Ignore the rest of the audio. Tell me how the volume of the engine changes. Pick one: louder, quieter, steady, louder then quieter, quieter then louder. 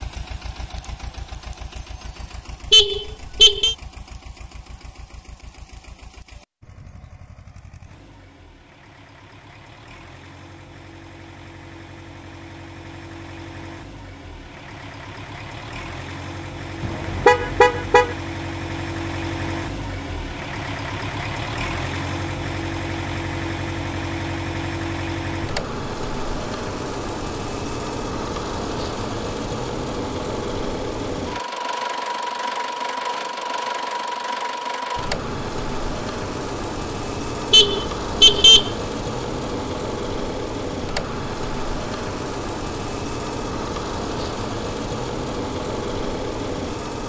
louder.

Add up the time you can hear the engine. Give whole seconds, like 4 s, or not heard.
47 s.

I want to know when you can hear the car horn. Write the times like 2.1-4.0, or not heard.
2.7-3.8, 16.8-18.1, 37.5-38.7.